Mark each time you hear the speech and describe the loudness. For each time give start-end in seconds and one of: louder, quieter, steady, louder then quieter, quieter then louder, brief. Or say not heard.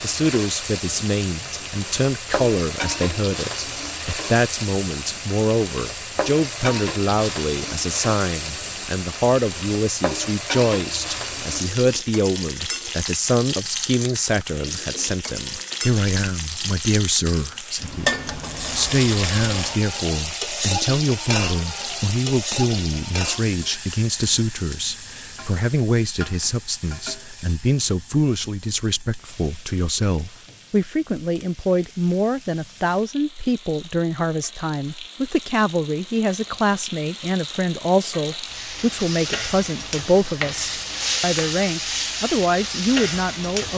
0.0-43.7 steady.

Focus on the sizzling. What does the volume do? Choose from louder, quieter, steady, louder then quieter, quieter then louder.
quieter then louder.